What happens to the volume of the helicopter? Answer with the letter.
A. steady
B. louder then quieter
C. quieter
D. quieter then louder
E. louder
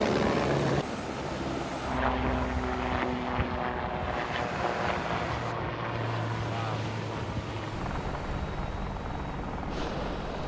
C.